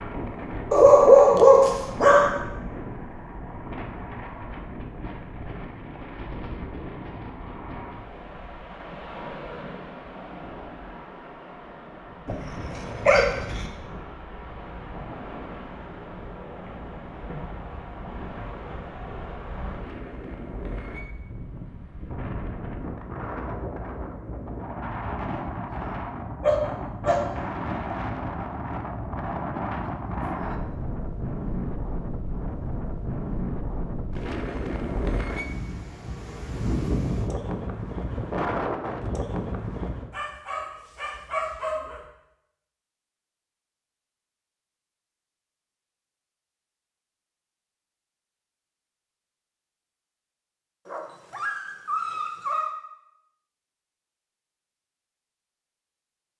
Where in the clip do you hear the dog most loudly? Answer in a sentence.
The volume of the dog peaks at 1 second.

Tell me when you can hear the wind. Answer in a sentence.
You can hear the wind from 0.0 to 40.1 s.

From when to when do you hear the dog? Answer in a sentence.
You can hear the dog from 0.7 to 2.4 s, from 12.2 to 13.7 s, from 26.4 to 27.2 s, from 40.1 to 42.0 s and from 50.9 to 52.8 s.